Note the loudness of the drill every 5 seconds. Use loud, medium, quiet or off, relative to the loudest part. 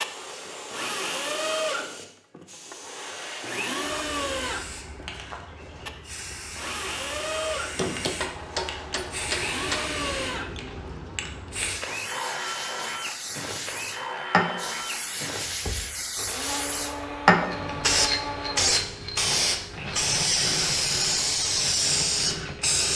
loud, loud, loud, medium, medium.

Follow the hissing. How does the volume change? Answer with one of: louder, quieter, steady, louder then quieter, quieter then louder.
louder.